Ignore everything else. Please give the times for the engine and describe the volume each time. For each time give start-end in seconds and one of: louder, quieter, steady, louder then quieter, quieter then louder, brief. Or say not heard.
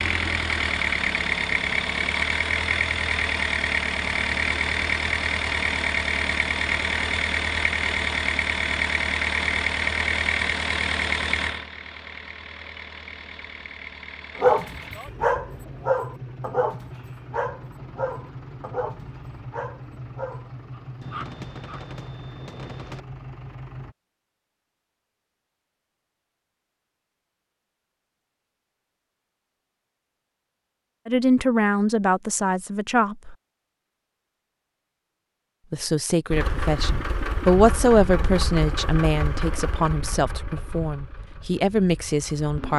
0.0-23.9 quieter
36.3-42.7 quieter.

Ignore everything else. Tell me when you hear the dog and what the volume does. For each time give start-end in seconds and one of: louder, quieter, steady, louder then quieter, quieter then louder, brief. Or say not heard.
14.3-21.8 quieter.